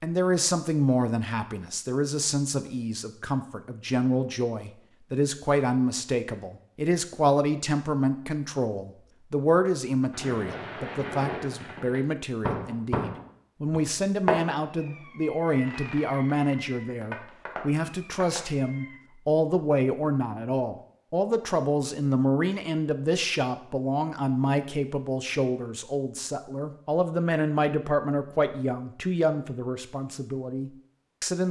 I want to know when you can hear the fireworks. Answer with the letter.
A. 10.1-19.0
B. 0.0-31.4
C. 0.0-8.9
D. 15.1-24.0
A.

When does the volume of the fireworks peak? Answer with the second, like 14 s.
14 s.